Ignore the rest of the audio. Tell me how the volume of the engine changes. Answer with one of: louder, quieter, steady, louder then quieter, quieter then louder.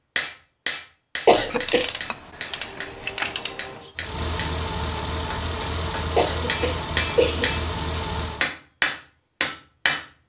steady.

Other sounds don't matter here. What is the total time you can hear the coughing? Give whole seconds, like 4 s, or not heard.
2 s.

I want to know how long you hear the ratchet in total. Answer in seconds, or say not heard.
3 s.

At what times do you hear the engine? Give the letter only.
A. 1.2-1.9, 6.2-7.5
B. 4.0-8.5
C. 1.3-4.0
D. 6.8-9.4
B.